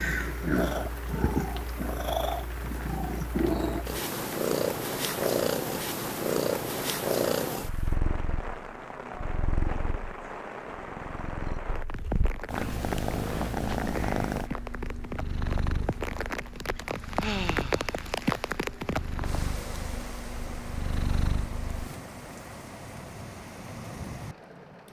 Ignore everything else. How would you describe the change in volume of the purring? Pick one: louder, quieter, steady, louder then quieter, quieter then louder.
quieter.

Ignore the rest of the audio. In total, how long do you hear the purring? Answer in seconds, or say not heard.
22 s.